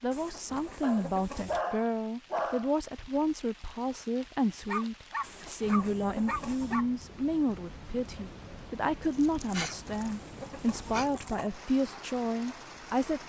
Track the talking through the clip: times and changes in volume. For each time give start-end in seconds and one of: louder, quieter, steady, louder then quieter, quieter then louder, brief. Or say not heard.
0.0-13.2 steady.